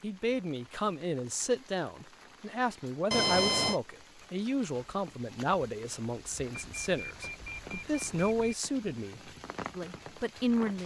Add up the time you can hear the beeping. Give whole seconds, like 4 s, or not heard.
3 s.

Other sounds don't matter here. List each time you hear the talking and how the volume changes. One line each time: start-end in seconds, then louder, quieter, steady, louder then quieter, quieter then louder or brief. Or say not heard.
0.0-10.8 steady.